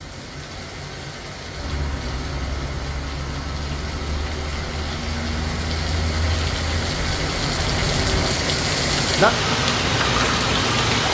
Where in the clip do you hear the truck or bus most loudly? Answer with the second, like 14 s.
8 s.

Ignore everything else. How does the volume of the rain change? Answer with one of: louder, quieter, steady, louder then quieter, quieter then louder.
louder.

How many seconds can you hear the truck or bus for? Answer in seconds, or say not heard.
7 s.